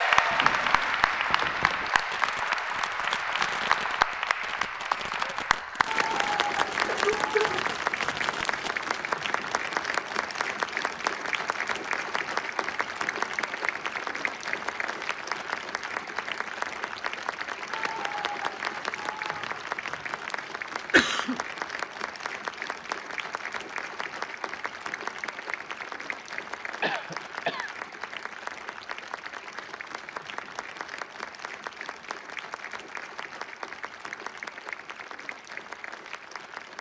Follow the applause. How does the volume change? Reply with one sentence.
The loudness of the applause goes down.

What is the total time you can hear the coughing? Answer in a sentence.
The coughing can be heard for 2 seconds in total.